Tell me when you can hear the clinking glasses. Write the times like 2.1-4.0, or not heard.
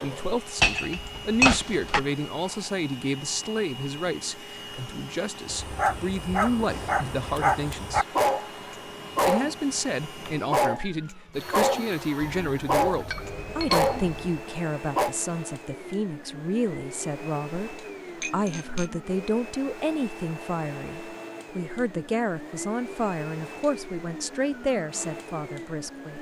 0.6-2.0, 12.2-14.4, 18.2-18.9.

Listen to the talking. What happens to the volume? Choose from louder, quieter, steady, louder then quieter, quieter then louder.
steady.